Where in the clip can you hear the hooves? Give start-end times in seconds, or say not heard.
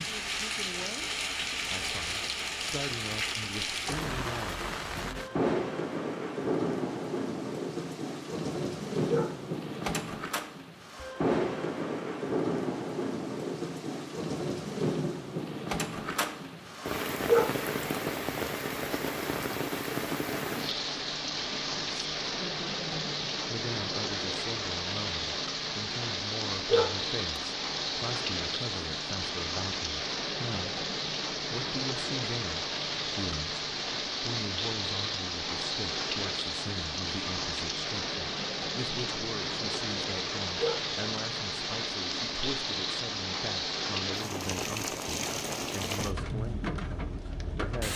not heard.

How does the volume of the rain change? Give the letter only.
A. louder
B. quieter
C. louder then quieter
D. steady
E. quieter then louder
D.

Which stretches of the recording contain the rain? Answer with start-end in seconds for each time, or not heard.
0.0-47.9.